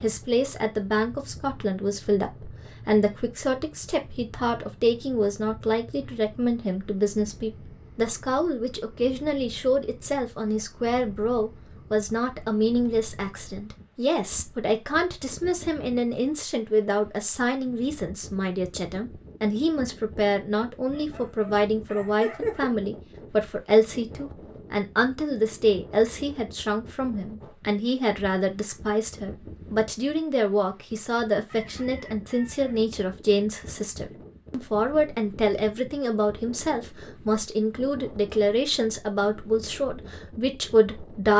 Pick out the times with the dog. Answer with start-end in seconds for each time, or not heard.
20.9-22.7.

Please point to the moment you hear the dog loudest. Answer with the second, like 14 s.
22 s.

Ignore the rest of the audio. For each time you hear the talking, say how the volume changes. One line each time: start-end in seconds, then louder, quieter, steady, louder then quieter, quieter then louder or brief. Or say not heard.
0.0-41.3 steady.